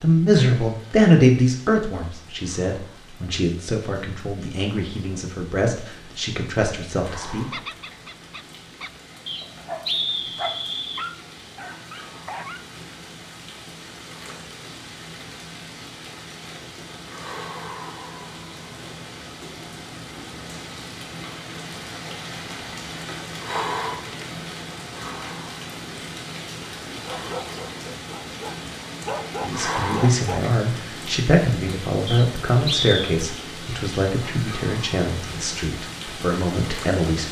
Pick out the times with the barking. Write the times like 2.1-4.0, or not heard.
7.3-12.7, 27.1-30.4.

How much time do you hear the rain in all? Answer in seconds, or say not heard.
37 s.